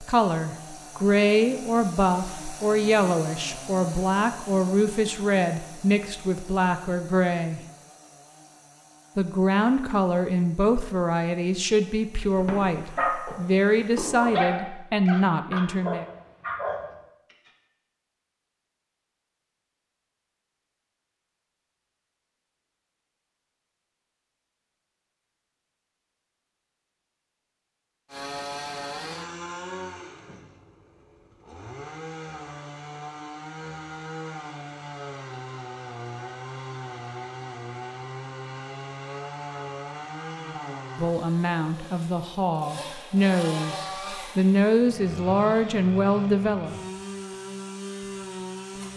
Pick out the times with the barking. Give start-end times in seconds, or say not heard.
12.3-17.5.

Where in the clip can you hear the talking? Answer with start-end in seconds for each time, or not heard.
0.0-7.6, 9.2-16.1, 40.5-46.8.